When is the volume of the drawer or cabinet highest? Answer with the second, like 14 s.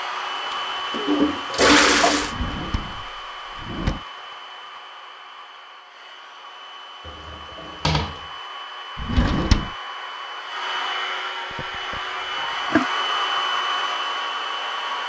9 s.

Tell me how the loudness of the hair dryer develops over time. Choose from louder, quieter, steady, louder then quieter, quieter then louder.
quieter then louder.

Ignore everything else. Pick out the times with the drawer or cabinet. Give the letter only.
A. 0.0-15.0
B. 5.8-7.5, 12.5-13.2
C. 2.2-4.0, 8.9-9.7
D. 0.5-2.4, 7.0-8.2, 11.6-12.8
C.